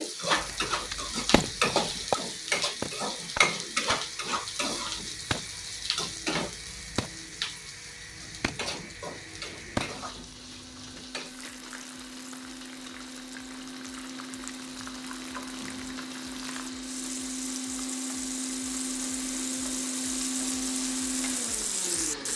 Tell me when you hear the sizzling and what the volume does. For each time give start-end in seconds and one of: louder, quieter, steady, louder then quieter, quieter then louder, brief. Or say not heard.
0.0-22.3 quieter then louder.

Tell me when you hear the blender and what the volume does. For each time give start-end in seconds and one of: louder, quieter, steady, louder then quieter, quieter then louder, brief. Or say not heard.
0.0-22.3 louder.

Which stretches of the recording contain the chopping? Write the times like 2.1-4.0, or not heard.
0.3-11.0.